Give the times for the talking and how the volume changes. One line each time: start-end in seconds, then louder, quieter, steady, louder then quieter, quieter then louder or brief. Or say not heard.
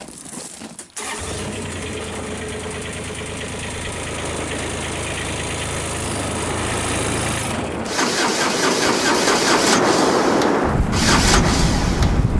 not heard.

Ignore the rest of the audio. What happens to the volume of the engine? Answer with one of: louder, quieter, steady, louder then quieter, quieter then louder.
louder.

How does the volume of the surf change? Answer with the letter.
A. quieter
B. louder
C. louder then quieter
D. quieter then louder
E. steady
B.